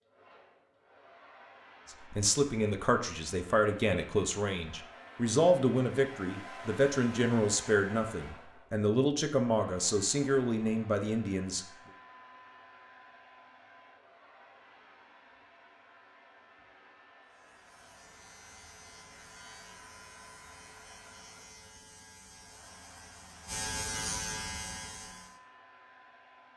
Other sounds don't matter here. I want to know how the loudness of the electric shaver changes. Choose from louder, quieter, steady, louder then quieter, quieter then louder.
louder.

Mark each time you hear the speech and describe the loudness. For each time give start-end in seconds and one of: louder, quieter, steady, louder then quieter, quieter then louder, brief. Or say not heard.
2.1-11.7 steady.